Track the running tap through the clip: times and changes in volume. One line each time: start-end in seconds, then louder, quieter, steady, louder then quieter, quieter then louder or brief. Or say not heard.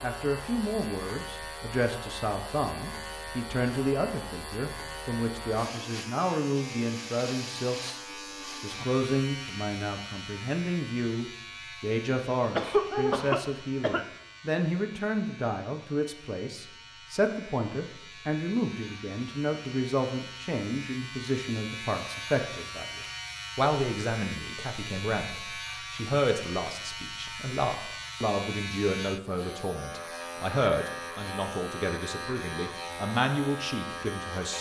not heard.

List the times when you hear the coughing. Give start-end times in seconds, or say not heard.
12.6-14.1.